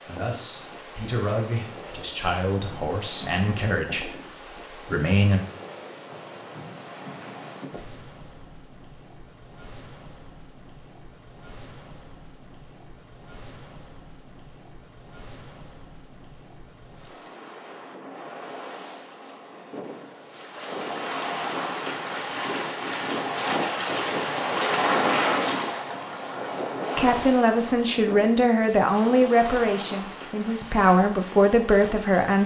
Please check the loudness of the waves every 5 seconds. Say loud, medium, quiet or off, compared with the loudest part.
quiet, quiet, quiet, quiet, loud, loud, quiet.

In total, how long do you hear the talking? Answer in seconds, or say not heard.
11 s.